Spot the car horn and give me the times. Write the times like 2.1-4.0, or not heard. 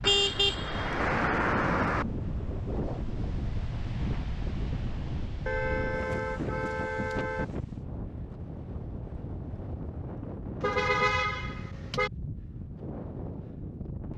0.0-2.0, 5.5-7.5, 10.6-12.1.